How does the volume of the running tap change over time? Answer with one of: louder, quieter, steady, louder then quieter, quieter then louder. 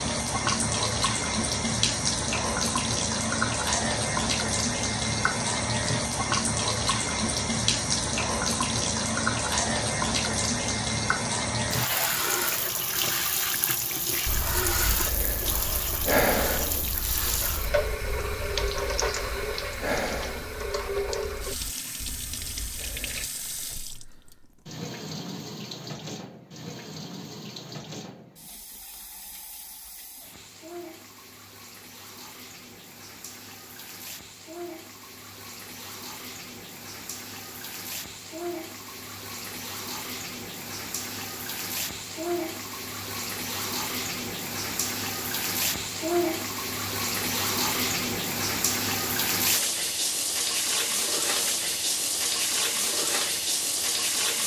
quieter then louder.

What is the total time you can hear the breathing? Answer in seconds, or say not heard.
9 s.